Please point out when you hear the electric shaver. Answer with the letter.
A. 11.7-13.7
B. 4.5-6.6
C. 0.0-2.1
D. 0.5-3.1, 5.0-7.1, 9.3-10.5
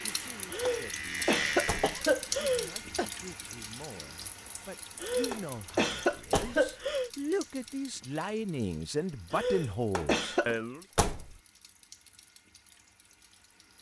C.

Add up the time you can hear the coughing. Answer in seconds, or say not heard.
6 s.